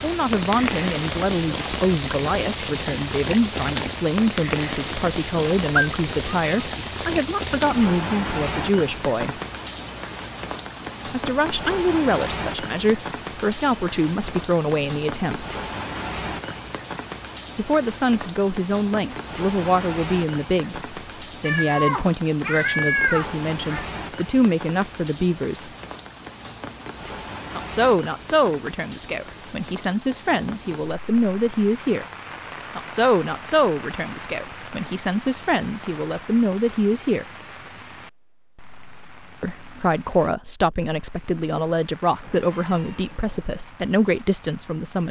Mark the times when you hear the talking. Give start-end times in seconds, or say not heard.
0.0-9.4, 11.1-15.4, 17.6-25.7, 27.6-32.0, 32.8-37.2, 39.4-45.0.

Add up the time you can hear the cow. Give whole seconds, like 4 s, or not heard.
not heard.